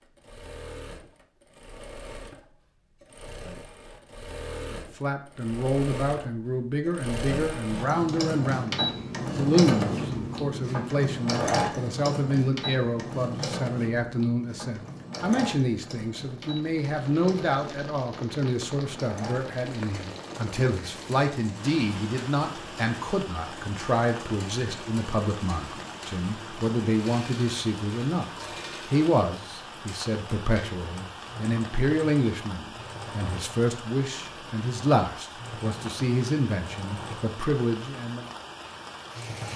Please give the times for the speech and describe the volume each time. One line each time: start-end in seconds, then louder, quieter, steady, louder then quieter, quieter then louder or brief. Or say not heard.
4.7-38.3 steady.